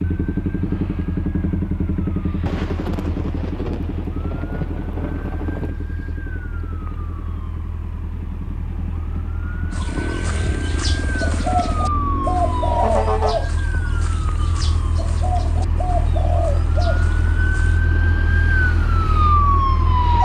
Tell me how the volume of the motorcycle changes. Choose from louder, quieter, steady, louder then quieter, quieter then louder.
quieter then louder.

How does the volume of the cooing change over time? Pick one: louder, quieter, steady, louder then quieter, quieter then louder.
louder then quieter.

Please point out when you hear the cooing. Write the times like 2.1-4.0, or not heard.
9.7-17.9.